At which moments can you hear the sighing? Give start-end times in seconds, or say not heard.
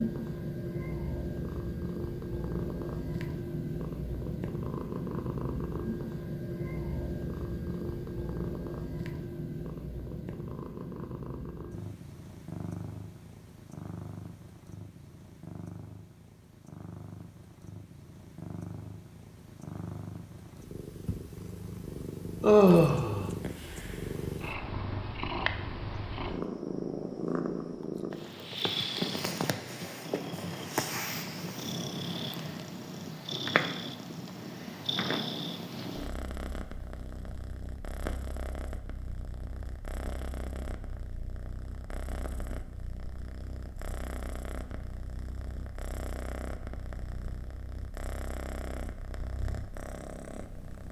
22.4-23.3.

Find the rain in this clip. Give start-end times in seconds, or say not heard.
not heard.